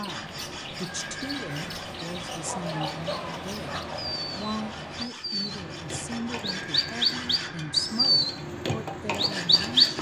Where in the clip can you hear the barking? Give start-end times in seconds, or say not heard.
2.2-4.2.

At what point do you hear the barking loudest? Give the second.
3 s.